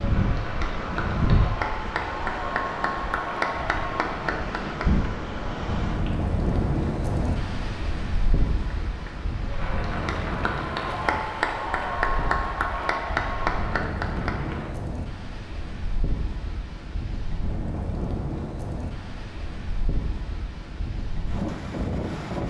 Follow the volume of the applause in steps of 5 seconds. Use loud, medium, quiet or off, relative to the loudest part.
loud, quiet, loud, off, off.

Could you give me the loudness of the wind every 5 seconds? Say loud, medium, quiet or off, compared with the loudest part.
loud, loud, medium, medium, loud.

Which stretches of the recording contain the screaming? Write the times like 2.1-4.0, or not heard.
not heard.